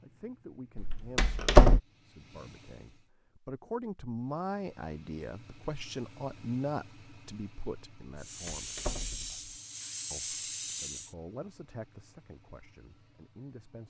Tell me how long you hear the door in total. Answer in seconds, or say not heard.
2 s.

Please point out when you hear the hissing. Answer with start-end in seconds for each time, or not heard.
8.2-11.2.